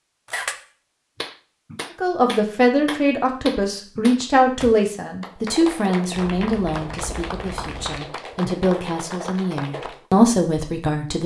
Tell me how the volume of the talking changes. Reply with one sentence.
The loudness of the talking goes down, then up.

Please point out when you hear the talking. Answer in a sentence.
The talking can be heard from 2.0 to 11.2 s.